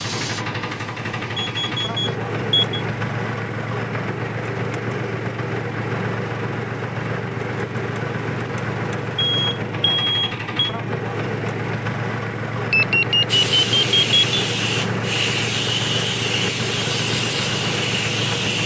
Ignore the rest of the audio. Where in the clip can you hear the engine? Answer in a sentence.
You can hear the engine from 0.0 to 18.6 s.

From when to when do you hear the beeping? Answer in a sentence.
You can hear the beeping from 1.4 to 2.9 s, from 9.2 to 10.6 s and from 12.7 to 14.2 s.